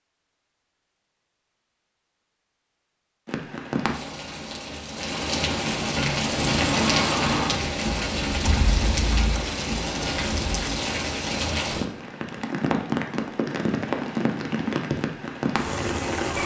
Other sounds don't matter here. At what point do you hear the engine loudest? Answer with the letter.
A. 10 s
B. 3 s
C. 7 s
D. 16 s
C.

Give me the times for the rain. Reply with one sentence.
You can hear the rain from 3.2 to 16.4 s.